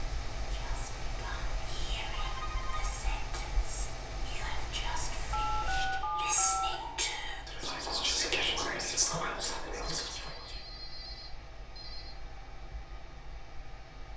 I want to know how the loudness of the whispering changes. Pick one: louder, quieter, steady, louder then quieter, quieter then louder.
louder.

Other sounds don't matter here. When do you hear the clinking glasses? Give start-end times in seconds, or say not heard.
not heard.